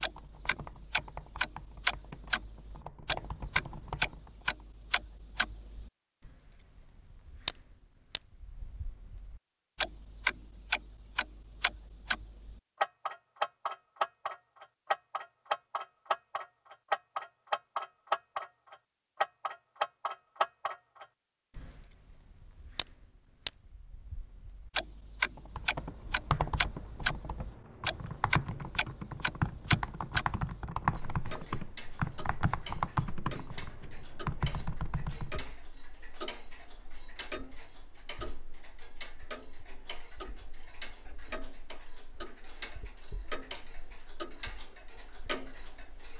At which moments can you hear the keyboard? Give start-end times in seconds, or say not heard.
0.0-4.7, 25.4-35.5.